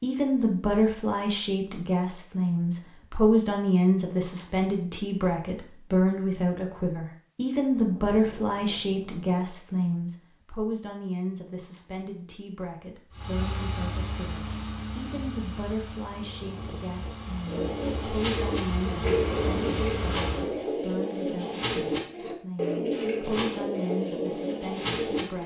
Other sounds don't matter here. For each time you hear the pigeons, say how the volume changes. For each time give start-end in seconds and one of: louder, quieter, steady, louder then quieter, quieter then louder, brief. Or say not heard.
17.4-25.4 steady.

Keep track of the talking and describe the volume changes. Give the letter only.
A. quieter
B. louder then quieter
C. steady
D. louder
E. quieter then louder
A.